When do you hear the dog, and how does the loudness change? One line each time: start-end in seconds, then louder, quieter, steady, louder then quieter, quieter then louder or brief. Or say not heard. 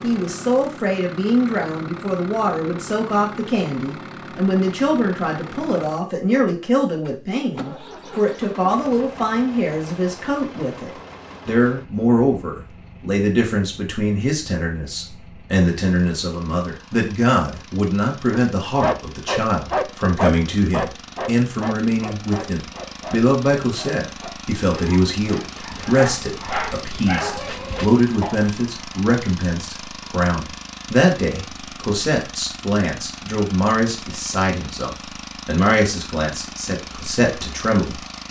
18.3-28.4 quieter then louder.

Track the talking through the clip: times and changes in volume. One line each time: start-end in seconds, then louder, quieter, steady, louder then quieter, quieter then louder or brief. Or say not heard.
0.0-38.0 steady.